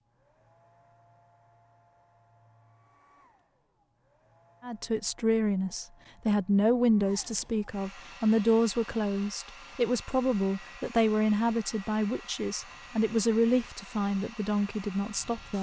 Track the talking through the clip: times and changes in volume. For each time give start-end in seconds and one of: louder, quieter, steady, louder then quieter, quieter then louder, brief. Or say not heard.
4.6-15.5 steady.